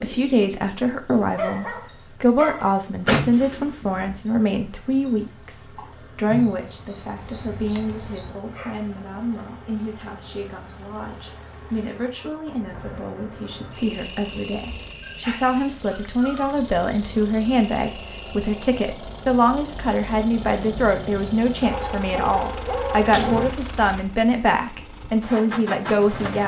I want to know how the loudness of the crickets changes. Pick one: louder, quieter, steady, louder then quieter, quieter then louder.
quieter.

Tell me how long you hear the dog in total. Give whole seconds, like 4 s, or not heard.
7 s.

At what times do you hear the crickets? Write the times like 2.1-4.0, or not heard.
0.0-18.9.